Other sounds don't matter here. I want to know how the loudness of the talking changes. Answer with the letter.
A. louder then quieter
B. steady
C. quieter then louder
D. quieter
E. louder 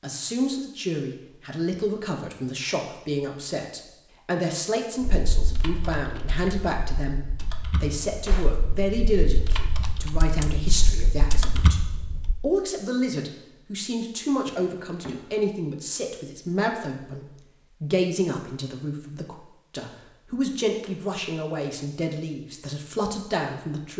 B.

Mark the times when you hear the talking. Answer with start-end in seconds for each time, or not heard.
0.0-23.9.